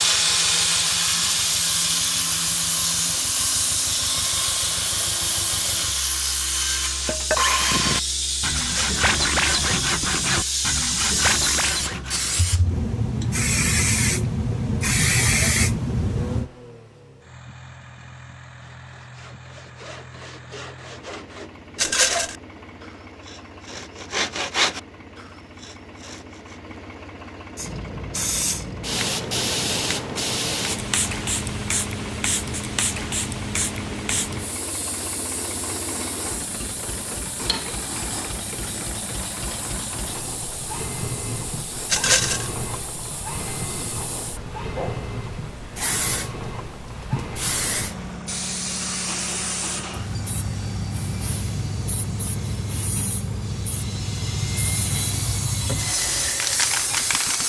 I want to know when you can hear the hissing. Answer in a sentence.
You can hear the hissing from 0.0 to 16.5 s and from 27.6 to 57.4 s.